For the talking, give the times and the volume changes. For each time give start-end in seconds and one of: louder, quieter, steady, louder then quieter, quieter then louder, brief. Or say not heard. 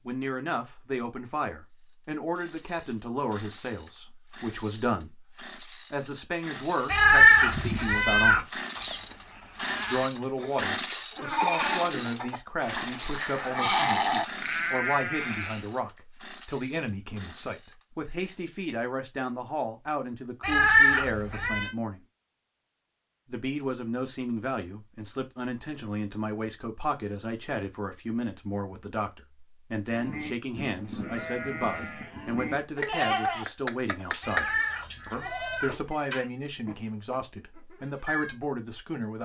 0.1-8.7 steady
9.8-22.0 steady
23.2-39.2 steady.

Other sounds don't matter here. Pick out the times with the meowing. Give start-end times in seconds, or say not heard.
6.8-8.4, 20.4-21.7, 34.2-35.9.